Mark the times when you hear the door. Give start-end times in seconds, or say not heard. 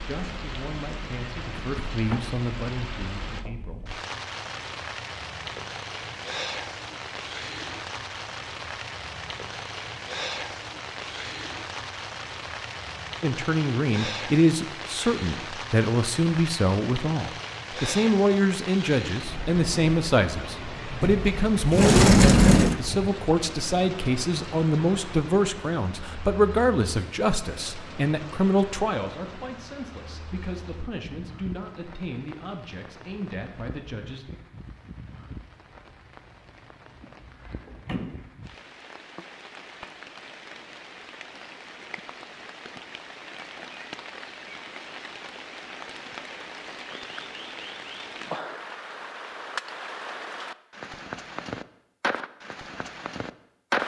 1.4-2.4, 21.0-22.8, 37.0-38.2.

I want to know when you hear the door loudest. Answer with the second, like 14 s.
22 s.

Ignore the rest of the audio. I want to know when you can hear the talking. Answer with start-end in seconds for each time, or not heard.
0.0-3.9, 13.2-34.4.